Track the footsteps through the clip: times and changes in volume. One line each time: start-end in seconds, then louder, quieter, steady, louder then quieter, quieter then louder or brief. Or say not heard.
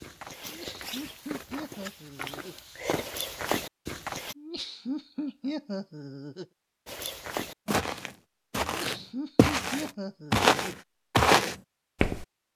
0.0-4.3 louder
6.8-12.2 louder.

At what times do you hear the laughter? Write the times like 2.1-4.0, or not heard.
0.4-2.5, 4.3-6.5, 8.6-10.7.